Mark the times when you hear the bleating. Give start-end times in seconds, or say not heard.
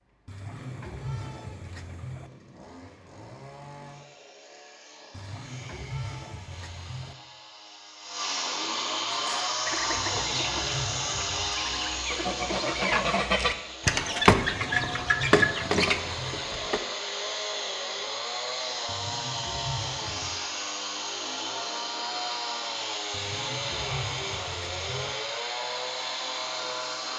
0.2-2.3, 5.1-7.2, 9.9-11.6, 14.6-16.4, 18.9-20.4, 23.1-25.1.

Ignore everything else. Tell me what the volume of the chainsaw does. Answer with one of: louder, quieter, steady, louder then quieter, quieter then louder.
louder.